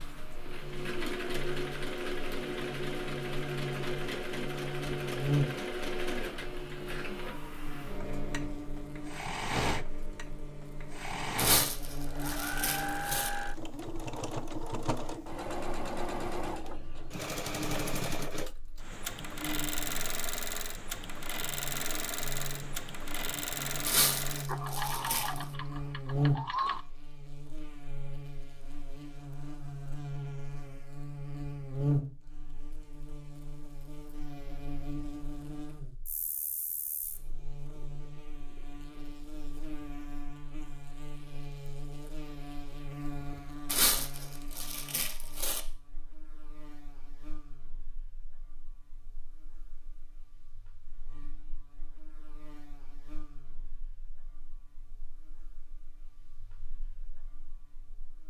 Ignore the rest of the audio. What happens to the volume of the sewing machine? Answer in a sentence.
The volume of the sewing machine stays about the same.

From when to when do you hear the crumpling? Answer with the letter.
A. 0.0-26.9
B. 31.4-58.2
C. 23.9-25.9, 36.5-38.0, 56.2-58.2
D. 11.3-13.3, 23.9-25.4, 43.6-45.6
D.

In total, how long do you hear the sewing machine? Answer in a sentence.
You can hear the sewing machine for 27 seconds altogether.